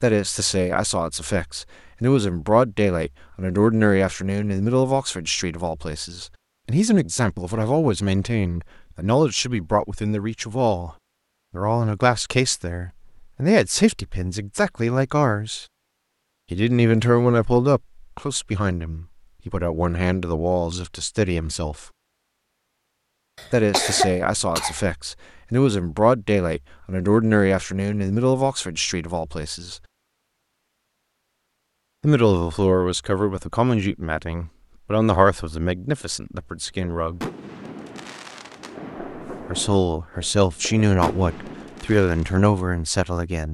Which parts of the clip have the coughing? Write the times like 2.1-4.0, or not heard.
23.4-24.8.